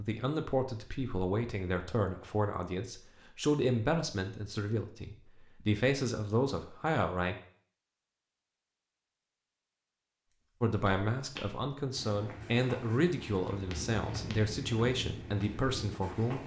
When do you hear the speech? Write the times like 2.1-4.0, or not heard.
0.0-7.3, 10.6-16.4.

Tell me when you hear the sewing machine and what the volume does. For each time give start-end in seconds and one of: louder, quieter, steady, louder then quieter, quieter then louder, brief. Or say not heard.
not heard.